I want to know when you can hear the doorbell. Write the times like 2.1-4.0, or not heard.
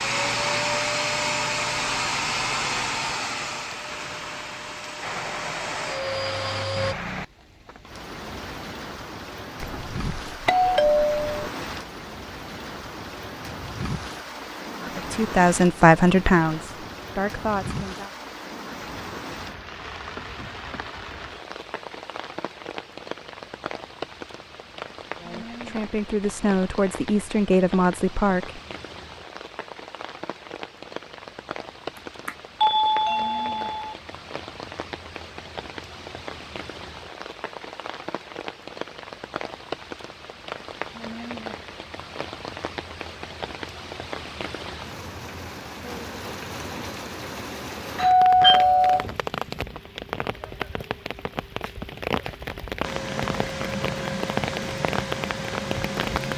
9.6-11.4, 31.9-34.0, 48.0-49.1.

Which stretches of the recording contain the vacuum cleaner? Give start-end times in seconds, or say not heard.
0.0-7.0, 52.8-56.3.